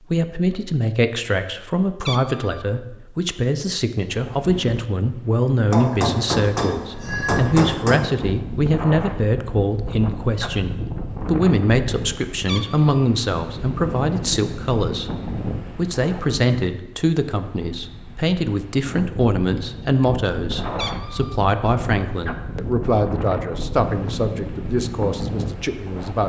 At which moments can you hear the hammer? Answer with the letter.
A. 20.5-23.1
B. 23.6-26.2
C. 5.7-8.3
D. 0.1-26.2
C.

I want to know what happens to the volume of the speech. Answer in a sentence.
The volume of the speech stays about the same.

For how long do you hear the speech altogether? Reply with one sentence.
You can hear the speech for 26 seconds altogether.